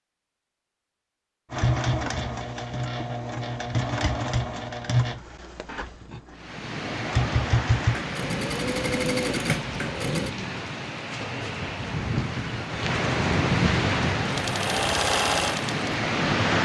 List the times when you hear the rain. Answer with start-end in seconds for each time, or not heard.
6.3-16.5.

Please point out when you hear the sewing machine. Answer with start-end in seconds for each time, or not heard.
1.5-10.3, 14.2-15.9.